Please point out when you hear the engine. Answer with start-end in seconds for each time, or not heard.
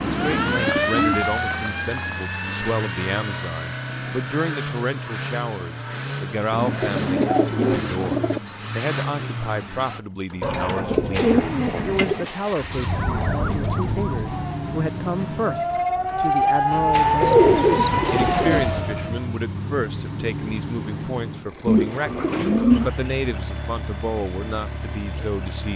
0.0-25.7.